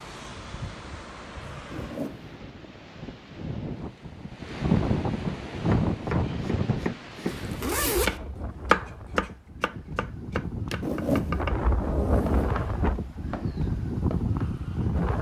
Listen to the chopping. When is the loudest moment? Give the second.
9 s.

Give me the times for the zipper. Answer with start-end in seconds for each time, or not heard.
1.7-2.2, 7.2-8.2, 10.8-12.6.